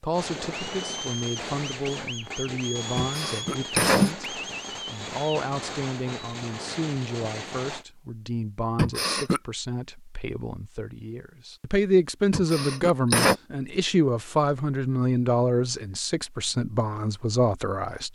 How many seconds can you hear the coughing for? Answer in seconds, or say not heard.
3 s.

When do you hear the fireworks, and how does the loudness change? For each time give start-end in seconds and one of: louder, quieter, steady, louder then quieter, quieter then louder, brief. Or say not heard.
0.1-7.8 steady.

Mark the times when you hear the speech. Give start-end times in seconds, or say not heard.
0.0-18.1.